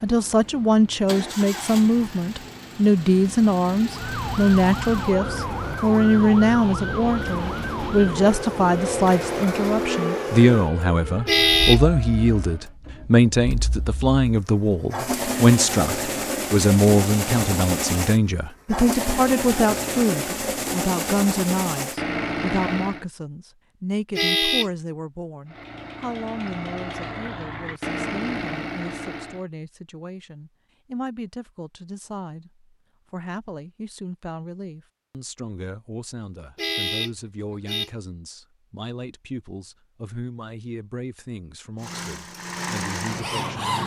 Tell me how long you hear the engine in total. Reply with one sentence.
The engine can be heard for 29 seconds in total.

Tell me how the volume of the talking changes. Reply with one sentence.
The loudness of the talking goes down.